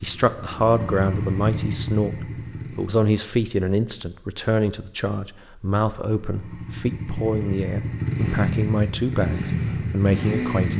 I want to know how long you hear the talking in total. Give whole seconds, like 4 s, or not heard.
11 s.